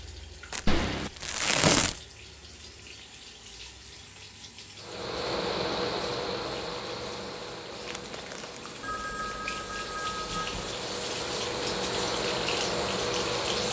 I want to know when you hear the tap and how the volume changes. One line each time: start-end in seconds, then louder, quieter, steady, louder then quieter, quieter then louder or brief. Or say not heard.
0.0-13.6 louder.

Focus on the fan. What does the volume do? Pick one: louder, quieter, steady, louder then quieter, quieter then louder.
quieter then louder.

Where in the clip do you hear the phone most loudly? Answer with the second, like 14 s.
1 s.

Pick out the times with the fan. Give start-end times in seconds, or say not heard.
4.8-13.6.